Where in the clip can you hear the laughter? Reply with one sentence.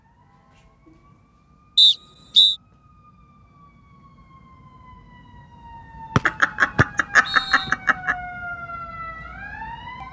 The laughter can be heard from 6.2 to 8.2 s.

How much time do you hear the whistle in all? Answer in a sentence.
The whistle can be heard for 2 seconds in total.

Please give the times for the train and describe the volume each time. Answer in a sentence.
You can't hear the train here.